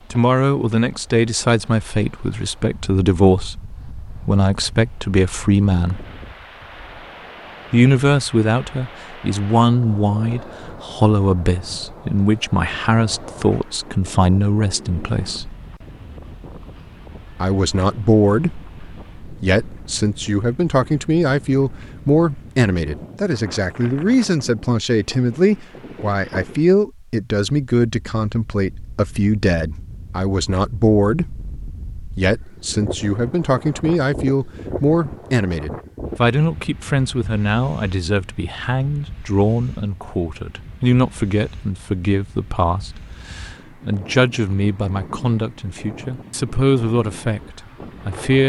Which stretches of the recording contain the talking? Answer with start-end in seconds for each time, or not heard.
0.1-6.0, 7.7-15.6, 17.4-48.4.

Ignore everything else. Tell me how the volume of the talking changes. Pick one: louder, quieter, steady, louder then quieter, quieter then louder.
steady.